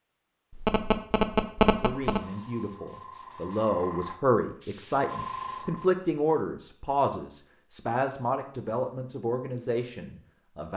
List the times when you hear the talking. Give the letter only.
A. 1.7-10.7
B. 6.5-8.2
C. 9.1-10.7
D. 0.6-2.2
A.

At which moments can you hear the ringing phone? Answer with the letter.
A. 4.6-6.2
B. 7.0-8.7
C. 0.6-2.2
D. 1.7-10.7
C.